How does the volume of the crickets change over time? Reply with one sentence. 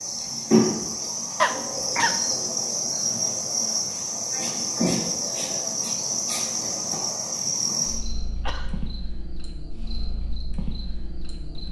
The loudness of the crickets goes down.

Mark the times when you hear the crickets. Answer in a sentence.
You can hear the crickets from 0.0 to 11.6 s.